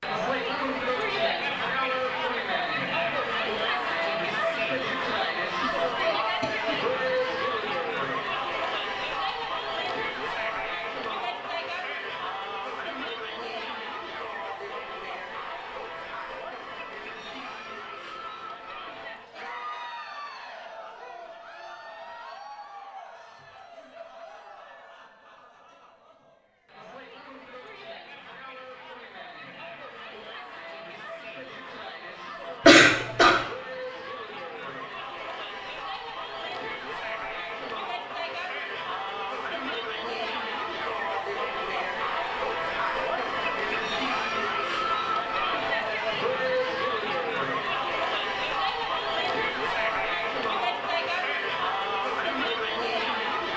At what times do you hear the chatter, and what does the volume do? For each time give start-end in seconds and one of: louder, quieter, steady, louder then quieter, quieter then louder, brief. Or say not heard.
0.0-53.5 quieter then louder.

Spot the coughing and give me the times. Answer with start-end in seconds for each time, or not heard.
5.6-6.8, 32.6-33.4.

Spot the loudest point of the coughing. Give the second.
33 s.